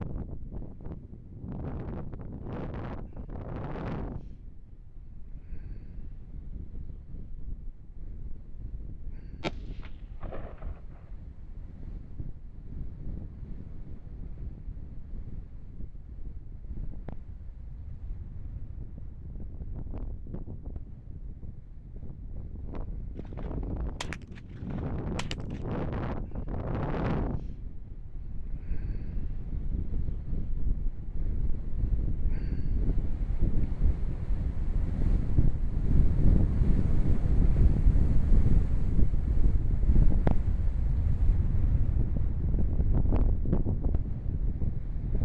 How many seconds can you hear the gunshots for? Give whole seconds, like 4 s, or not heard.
4 s.